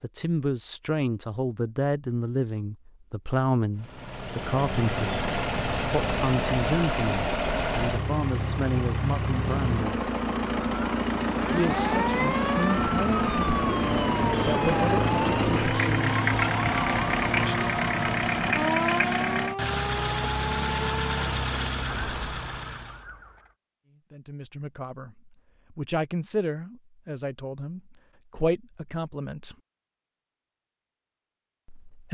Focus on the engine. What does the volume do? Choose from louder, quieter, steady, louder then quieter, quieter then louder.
steady.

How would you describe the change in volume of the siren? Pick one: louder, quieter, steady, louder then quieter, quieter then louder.
quieter.